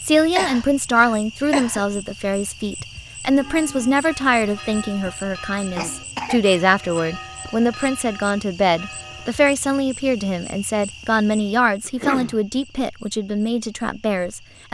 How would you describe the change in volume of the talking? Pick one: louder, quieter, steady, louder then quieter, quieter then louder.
steady.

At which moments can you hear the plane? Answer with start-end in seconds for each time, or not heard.
not heard.